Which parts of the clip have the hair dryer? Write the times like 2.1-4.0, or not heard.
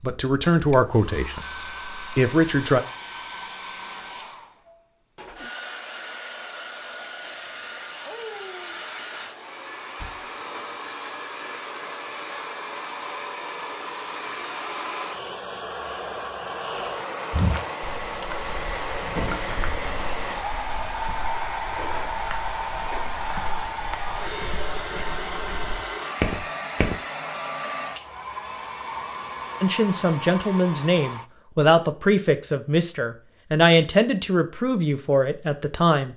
0.0-31.3.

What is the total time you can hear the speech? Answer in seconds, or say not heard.
9 s.